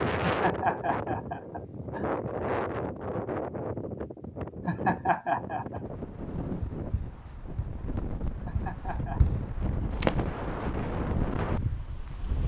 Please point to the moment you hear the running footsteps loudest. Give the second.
10 s.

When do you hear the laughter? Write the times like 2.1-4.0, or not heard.
0.2-2.1, 4.7-5.8, 8.4-9.2.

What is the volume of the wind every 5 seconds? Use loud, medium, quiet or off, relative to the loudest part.
loud, medium, loud.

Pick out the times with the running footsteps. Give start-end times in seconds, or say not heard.
6.4-9.4, 10.0-10.5.